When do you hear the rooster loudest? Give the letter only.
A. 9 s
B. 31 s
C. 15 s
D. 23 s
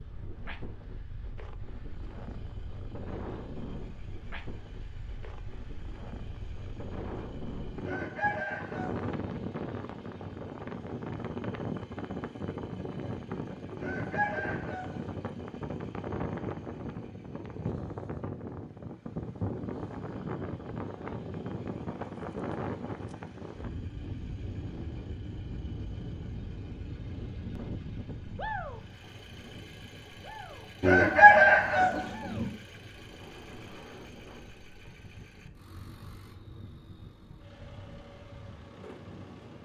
B.